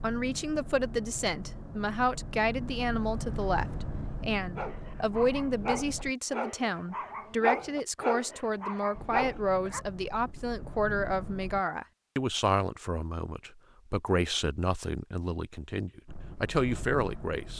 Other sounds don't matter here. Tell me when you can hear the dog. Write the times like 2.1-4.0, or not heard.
4.5-9.8.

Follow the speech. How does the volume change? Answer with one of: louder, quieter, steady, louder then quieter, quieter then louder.
steady.